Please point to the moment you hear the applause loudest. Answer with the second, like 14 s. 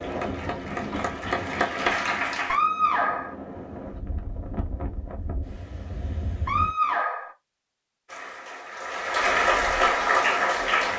10 s.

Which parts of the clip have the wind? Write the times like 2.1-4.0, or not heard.
0.0-6.8.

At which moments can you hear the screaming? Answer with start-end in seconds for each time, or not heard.
2.5-3.4, 6.5-7.3.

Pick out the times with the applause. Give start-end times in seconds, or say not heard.
0.0-2.6, 8.1-10.9.